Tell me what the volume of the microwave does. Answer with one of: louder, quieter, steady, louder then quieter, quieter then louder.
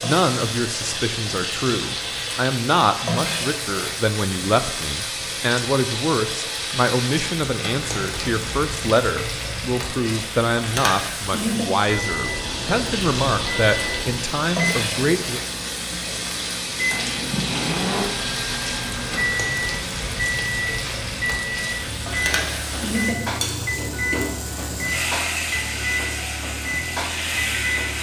steady.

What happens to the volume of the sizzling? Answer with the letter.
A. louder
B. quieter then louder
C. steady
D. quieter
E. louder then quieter
C.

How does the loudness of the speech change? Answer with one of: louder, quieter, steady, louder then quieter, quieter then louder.
steady.